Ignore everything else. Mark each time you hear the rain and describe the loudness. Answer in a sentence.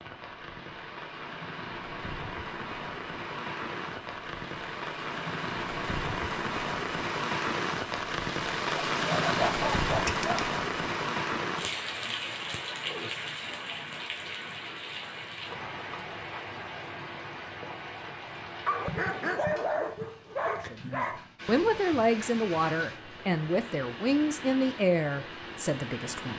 You can hear the rain from 0.0 to 26.3 s, getting louder then quieter.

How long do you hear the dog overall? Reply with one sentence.
The dog can be heard for 4 seconds in total.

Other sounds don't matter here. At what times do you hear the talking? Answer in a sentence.
You can hear the talking from 20.7 to 26.3 s.